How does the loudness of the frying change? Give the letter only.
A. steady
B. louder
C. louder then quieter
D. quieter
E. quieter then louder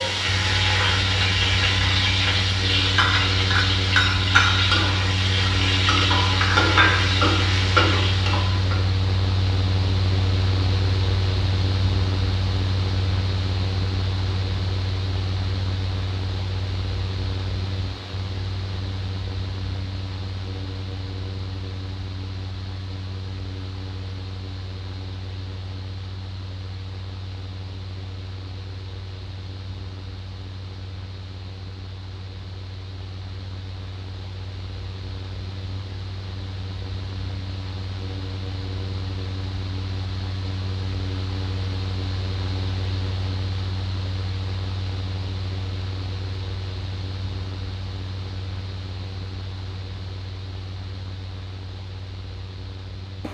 A.